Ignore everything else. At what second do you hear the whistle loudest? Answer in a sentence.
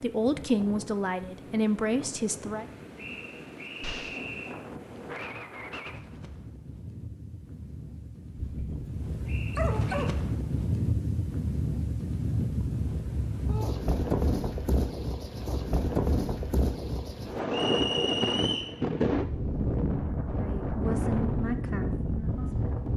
The loudest moment of the whistle is at 18 seconds.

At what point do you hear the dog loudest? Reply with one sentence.
The volume of the dog peaks at 10 seconds.